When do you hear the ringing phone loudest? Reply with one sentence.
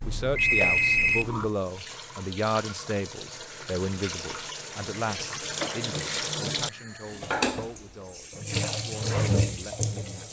The volume of the ringing phone peaks at 1 second.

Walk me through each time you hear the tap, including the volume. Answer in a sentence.
You can hear the tap from 0.5 to 10.2 s, getting louder.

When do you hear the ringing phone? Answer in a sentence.
The ringing phone can be heard from 0.0 to 1.5 s and from 5.2 to 5.9 s.